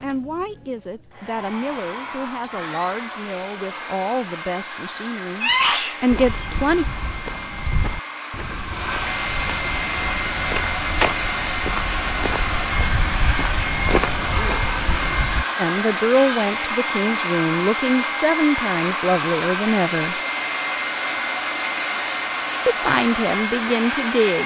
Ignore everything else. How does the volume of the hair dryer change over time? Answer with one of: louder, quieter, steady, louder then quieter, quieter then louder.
louder.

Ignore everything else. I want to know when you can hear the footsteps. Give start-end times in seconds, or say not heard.
6.1-15.4.